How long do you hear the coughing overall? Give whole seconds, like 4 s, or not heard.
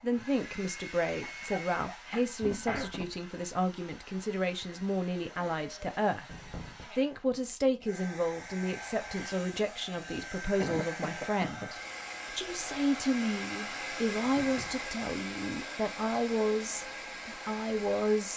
3 s.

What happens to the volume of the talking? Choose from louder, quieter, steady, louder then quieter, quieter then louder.
steady.